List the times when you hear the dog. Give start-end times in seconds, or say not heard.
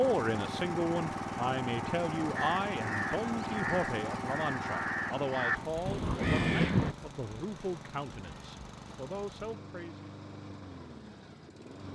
not heard.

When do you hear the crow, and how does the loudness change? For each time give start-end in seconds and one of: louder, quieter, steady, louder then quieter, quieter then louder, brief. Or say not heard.
2.4-7.0 louder.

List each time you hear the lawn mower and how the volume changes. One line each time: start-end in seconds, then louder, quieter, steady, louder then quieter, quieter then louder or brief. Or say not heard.
0.0-11.9 quieter.